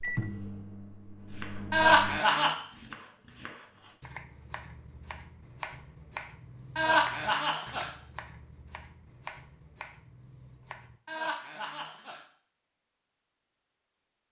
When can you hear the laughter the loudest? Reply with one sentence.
The volume of the laughter peaks at 2 seconds.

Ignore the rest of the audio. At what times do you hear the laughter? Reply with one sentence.
The laughter can be heard from 1.7 to 2.5 s, from 6.8 to 7.9 s and from 11.1 to 12.2 s.